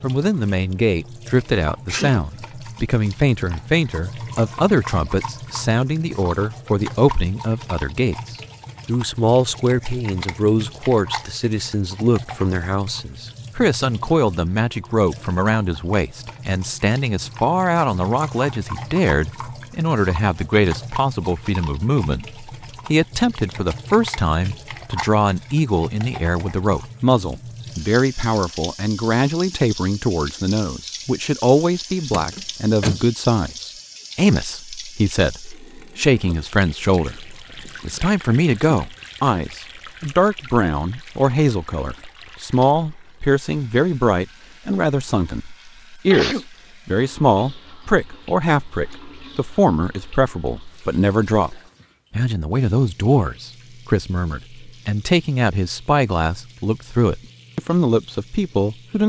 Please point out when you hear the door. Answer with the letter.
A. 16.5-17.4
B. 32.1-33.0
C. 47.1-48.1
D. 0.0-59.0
B.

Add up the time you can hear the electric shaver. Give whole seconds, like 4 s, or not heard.
not heard.